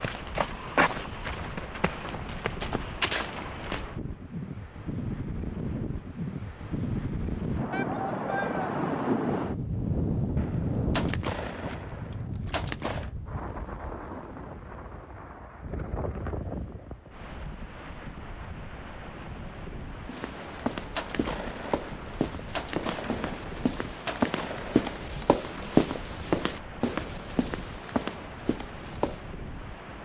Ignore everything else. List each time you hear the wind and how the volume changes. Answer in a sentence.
The wind can be heard from 0.0 to 29.9 s, getting louder then quieter.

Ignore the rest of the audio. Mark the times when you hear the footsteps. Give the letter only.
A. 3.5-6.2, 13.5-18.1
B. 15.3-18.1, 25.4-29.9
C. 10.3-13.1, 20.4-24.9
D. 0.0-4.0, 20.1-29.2
D.